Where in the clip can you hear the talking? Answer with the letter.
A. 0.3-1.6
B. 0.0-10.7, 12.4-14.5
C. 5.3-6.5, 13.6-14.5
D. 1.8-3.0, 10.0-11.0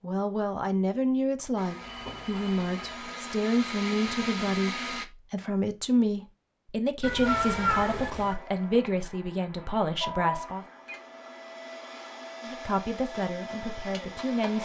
B.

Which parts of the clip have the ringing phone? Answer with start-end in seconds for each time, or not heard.
1.8-3.0, 10.0-11.0.